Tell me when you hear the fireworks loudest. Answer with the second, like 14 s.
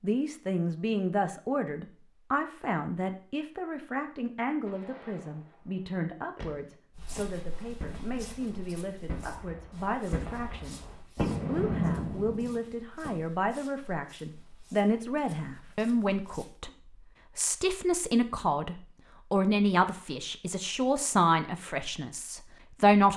12 s.